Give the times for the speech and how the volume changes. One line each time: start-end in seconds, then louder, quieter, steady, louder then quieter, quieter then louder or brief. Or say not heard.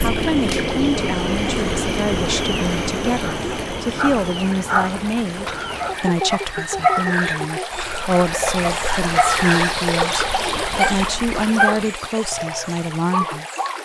0.0-13.4 steady.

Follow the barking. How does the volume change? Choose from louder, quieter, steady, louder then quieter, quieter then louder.
steady.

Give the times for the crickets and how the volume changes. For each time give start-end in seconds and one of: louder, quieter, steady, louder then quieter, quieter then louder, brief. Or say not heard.
0.0-11.3 quieter.